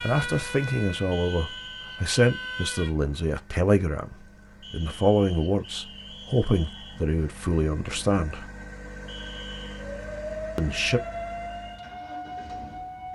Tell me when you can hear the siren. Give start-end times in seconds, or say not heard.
0.0-3.0, 9.8-13.1.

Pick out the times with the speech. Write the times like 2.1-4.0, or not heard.
0.0-8.5, 10.6-11.0.